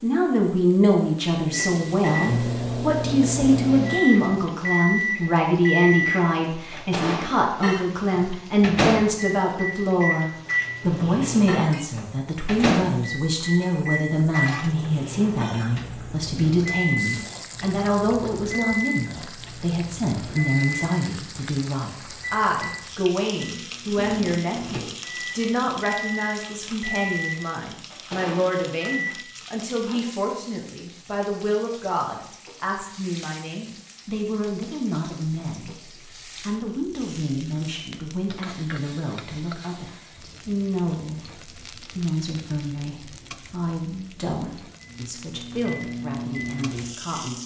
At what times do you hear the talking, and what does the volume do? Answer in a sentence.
The talking can be heard from 0.0 to 47.4 s, getting quieter.